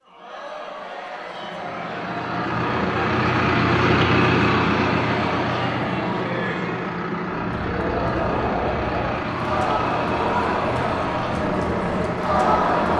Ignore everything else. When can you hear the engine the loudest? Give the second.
4 s.